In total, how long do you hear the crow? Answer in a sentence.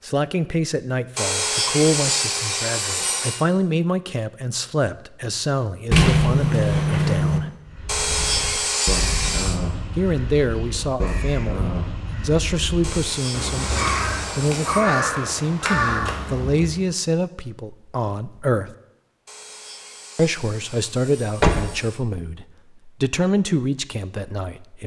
The crow can be heard for 9 seconds in total.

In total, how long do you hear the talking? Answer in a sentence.
The talking can be heard for 21 seconds in total.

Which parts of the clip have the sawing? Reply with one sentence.
The sawing can be heard from 1.1 to 3.5 s, from 7.8 to 9.6 s, from 12.8 to 14.8 s and from 19.2 to 22.1 s.